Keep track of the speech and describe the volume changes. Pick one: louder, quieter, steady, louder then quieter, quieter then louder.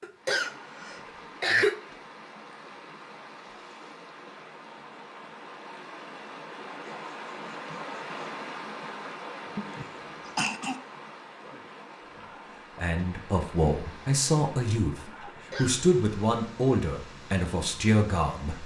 steady.